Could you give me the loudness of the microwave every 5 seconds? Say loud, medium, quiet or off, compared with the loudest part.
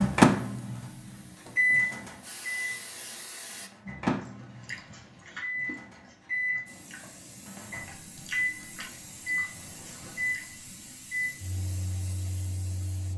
loud, medium, quiet.